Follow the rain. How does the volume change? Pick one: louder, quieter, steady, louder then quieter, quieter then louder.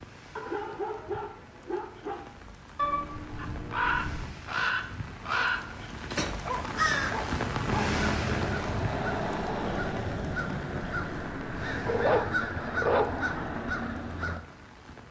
louder then quieter.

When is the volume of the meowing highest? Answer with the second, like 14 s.
3 s.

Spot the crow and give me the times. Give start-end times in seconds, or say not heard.
3.4-14.4.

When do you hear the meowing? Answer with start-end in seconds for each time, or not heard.
2.8-4.3.